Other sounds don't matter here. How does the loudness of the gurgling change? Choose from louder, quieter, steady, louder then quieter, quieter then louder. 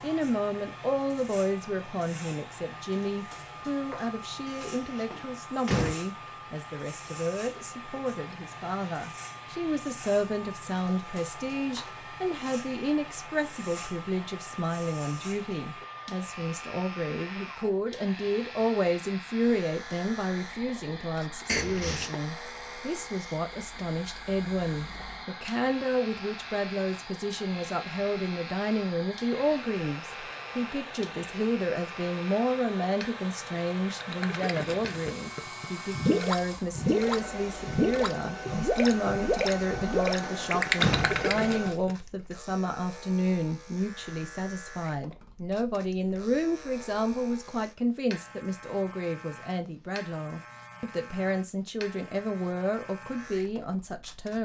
louder.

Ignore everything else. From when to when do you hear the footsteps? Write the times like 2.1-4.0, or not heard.
not heard.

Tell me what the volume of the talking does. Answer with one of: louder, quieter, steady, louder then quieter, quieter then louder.
steady.